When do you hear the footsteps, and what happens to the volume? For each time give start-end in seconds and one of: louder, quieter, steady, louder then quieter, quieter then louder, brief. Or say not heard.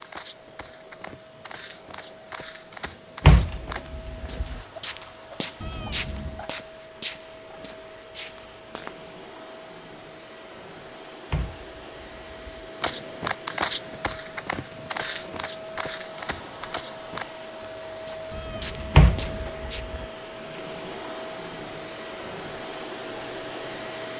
0.0-9.2 louder then quieter
12.8-19.9 quieter.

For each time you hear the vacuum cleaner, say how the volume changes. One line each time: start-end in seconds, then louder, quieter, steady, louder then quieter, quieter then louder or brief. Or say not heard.
0.0-24.1 louder.